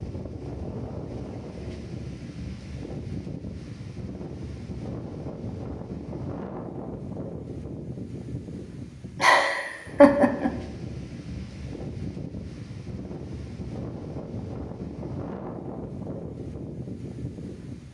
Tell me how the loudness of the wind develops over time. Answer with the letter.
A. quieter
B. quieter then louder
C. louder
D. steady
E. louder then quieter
D.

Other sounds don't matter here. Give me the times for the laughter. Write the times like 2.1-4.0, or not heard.
9.2-10.5.